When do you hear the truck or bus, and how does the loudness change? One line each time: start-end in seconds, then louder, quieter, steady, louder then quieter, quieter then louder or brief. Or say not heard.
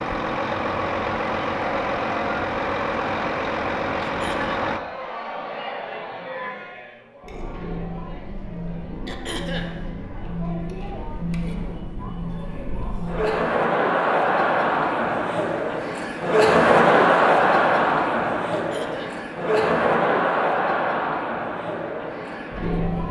0.0-4.8 steady.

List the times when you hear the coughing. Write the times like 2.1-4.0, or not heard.
4.0-4.5, 9.1-9.8, 18.5-19.2.